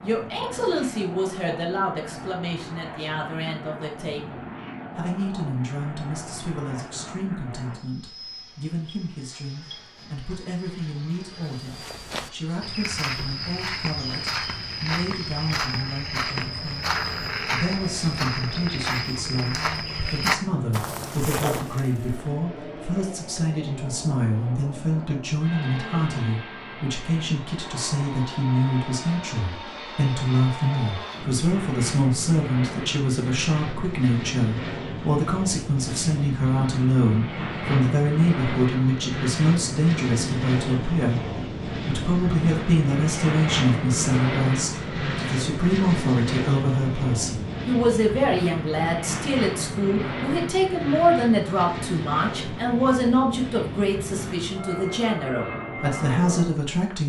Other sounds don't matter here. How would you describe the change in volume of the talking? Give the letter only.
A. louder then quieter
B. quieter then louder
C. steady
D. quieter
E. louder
E.